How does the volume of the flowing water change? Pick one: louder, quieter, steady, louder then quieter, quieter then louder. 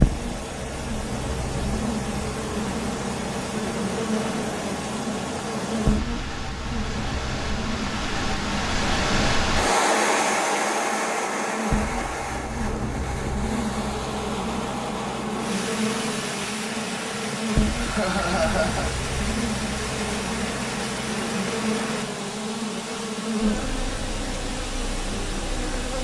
louder then quieter.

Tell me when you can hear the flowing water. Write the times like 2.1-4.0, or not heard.
0.0-25.9.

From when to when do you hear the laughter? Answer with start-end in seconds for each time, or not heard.
17.8-18.9.